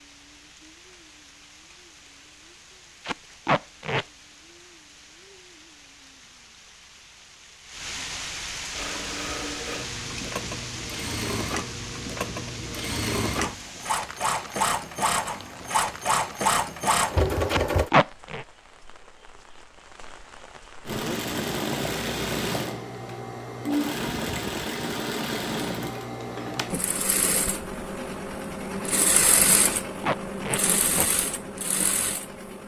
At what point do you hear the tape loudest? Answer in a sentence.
The loudest moment of the tape is at 18 seconds.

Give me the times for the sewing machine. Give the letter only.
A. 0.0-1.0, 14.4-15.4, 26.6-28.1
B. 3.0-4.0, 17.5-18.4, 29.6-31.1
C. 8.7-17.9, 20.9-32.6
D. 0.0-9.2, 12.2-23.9
C.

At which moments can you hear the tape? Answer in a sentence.
The tape can be heard from 3.0 to 4.0 s, from 17.5 to 18.4 s and from 29.6 to 31.1 s.